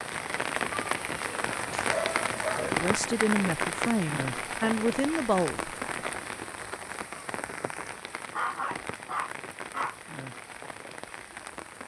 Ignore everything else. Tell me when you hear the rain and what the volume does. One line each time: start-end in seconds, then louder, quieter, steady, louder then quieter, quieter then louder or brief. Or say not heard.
0.0-11.8 quieter.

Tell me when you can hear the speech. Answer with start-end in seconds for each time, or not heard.
2.5-5.8.